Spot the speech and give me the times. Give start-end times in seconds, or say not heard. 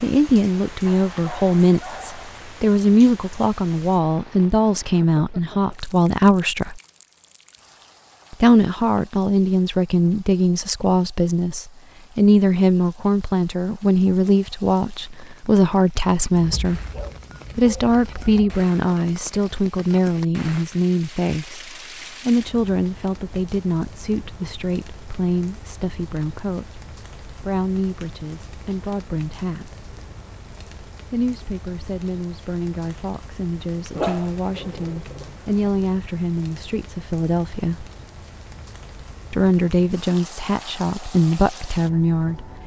0.0-6.8, 8.3-16.8, 17.6-29.8, 31.1-37.9, 39.3-42.5.